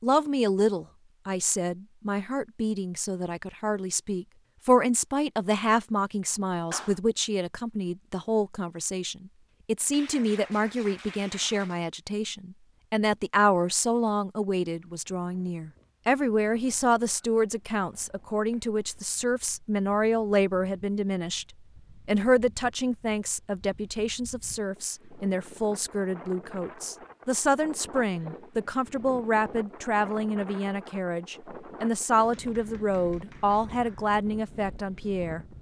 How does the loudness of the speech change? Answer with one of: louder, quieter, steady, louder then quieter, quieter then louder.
steady.